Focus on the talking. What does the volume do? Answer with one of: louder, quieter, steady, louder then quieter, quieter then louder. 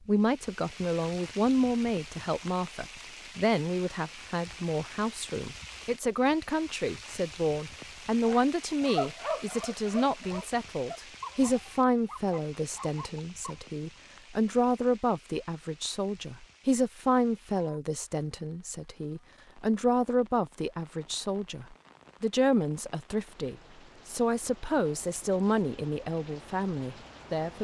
steady.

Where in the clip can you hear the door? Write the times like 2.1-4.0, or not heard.
not heard.